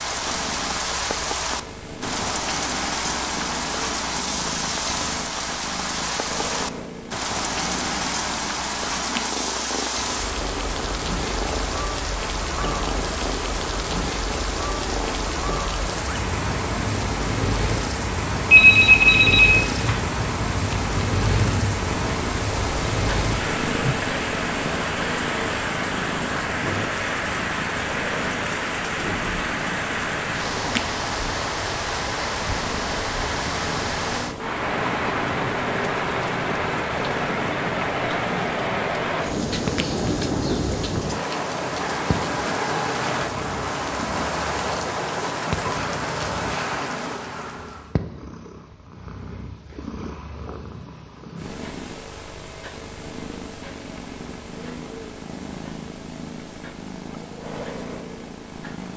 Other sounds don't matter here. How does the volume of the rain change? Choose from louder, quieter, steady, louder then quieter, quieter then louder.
steady.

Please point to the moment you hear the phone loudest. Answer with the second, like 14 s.
19 s.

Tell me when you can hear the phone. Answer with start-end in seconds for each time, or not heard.
18.5-20.0.